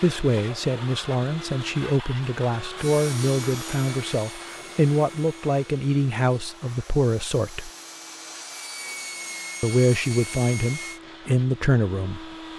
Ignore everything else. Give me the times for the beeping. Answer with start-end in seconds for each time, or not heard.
not heard.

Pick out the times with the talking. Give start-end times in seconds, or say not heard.
0.0-7.7, 9.6-12.3.